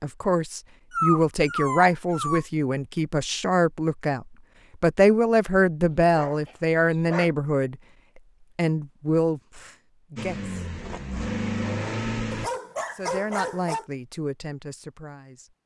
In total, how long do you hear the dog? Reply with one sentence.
You can hear the dog for 4 seconds altogether.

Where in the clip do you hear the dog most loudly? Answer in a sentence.
The loudest moment of the dog is at 1 second.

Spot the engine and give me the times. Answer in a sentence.
The engine can be heard from 10.2 to 12.5 s.